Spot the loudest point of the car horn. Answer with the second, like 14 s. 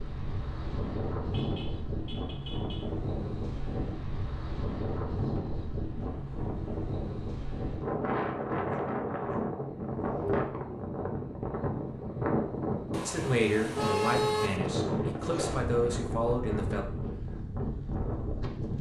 14 s.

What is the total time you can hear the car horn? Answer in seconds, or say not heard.
3 s.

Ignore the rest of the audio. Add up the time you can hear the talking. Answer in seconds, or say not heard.
4 s.